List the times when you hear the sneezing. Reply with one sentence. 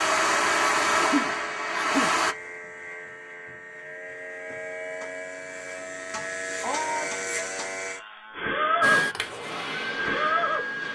The sneezing can be heard from 0.8 to 2.1 s and from 6.2 to 7.2 s.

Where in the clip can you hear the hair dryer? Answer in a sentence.
You can hear the hair dryer from 0.0 to 2.4 s and from 8.8 to 10.9 s.